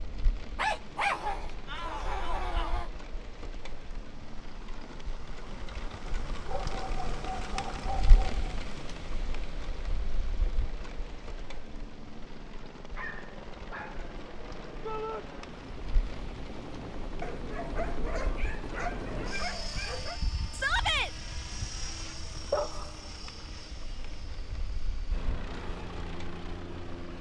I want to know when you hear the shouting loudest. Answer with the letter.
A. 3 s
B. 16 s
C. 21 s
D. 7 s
C.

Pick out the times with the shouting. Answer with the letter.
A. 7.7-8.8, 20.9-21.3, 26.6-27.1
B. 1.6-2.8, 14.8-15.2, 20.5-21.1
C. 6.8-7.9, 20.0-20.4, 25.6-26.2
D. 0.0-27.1
B.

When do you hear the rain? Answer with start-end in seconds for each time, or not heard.
0.0-27.1.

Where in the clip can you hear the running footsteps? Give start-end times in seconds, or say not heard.
not heard.